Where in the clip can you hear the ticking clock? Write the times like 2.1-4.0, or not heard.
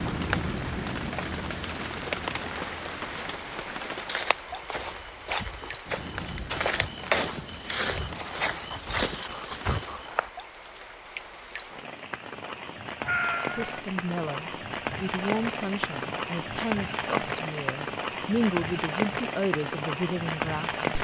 not heard.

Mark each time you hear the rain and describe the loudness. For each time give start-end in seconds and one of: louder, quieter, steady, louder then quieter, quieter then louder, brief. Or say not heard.
0.0-21.0 quieter then louder.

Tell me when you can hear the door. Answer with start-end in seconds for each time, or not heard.
not heard.